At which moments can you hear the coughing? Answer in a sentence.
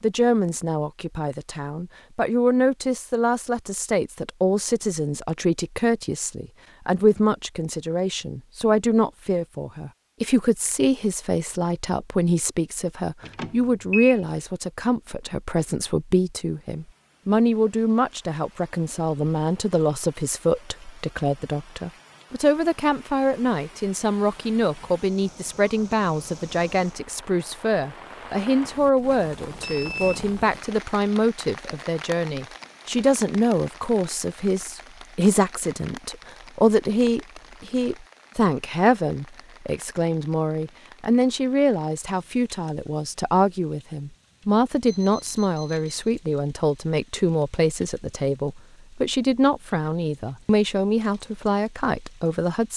You can't hear the coughing here.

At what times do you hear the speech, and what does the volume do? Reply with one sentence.
The speech can be heard from 0.0 to 52.7 s, at a steady volume.